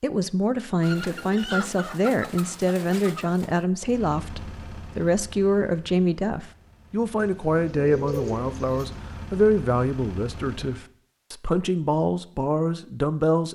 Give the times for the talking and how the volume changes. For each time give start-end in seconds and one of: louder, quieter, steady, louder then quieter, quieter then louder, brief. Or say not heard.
0.0-13.5 steady.